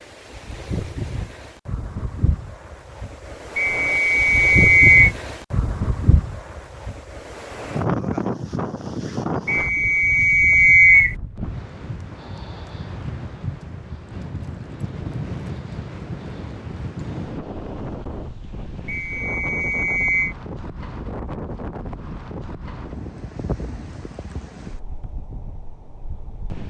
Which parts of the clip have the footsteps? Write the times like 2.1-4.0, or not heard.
not heard.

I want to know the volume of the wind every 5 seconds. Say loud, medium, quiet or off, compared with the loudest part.
loud, loud, medium, medium, medium, quiet.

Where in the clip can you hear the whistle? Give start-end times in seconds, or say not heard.
3.5-5.1, 9.4-11.2, 18.9-20.4.